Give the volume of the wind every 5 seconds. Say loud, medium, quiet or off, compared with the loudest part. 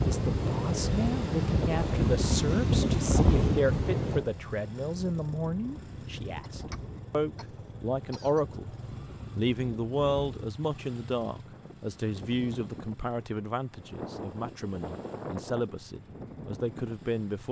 loud, quiet, quiet, quiet.